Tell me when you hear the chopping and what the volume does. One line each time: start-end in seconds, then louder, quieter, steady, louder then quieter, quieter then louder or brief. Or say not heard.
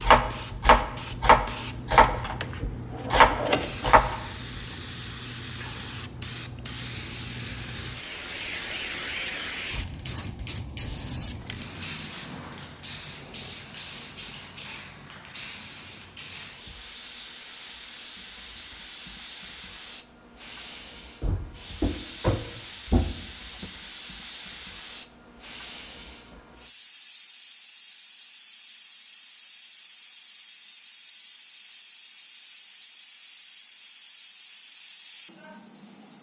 0.0-4.2 quieter then louder.